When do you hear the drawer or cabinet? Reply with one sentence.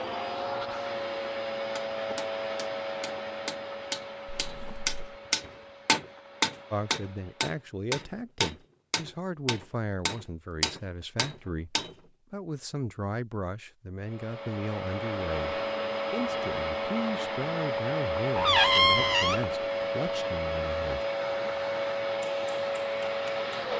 You can hear the drawer or cabinet from 4.2 to 5.0 s and from 18.4 to 19.4 s.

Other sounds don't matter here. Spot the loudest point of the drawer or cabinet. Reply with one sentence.
The volume of the drawer or cabinet peaks at 19 seconds.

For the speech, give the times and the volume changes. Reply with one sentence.
The speech can be heard from 6.7 to 21.1 s, at a steady volume.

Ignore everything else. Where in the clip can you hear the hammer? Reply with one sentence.
The hammer can be heard from 1.8 to 11.9 s and from 22.2 to 23.5 s.